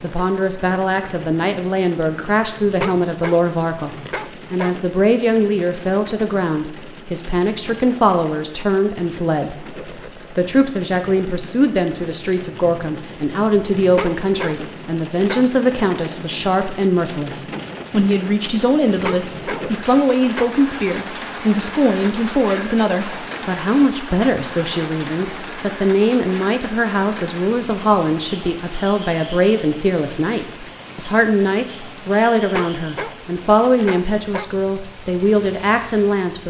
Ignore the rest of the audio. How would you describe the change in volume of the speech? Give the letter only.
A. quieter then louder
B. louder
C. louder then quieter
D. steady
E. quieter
D.